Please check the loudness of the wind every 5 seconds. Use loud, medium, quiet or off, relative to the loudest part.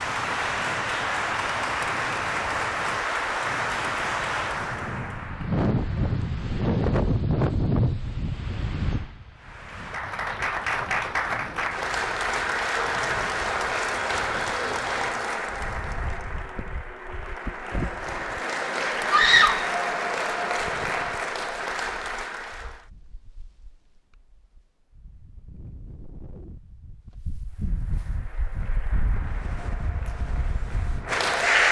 quiet, loud, quiet, quiet, quiet, quiet, quiet.